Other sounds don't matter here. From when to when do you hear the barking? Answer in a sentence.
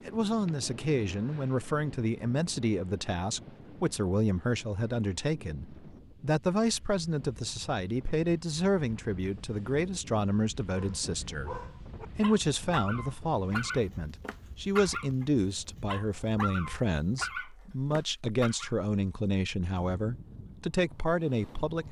You can hear the barking from 10.7 to 18.7 s.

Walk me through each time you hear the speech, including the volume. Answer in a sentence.
You can hear the speech from 0.1 to 21.8 s, at a steady volume.